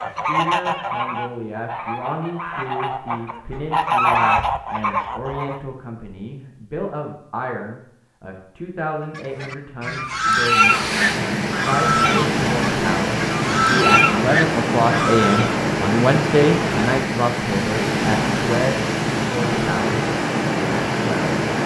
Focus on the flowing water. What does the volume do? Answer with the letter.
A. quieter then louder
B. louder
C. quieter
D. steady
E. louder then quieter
D.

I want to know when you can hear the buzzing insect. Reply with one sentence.
You can't hear the buzzing insect here.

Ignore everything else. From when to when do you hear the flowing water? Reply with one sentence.
The flowing water can be heard from 10.4 to 21.6 s.